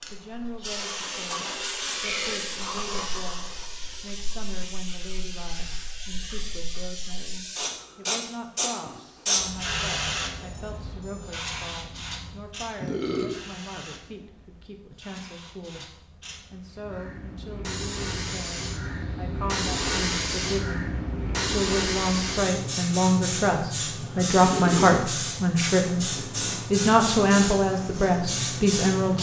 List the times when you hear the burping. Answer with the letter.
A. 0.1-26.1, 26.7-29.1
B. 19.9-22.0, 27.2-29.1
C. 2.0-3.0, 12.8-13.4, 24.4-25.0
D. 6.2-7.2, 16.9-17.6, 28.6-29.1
C.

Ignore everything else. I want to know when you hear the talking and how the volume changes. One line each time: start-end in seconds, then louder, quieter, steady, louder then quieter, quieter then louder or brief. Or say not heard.
0.1-26.1 louder
26.7-29.1 brief.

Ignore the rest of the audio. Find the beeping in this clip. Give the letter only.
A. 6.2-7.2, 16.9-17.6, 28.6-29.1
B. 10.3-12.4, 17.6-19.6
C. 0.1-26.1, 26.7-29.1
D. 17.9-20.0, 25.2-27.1
B.